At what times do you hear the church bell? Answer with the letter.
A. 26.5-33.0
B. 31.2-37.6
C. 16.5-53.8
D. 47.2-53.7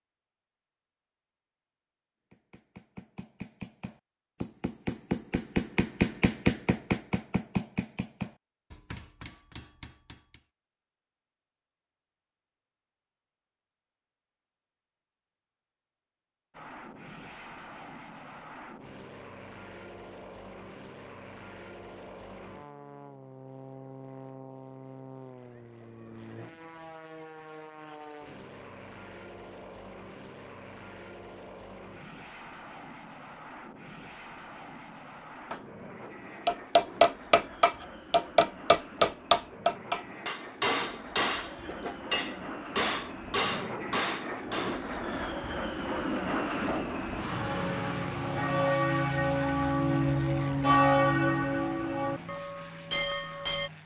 D.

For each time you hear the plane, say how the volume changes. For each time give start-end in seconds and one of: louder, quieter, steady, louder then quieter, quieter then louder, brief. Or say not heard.
16.5-53.8 louder.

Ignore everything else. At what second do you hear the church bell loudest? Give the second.
51 s.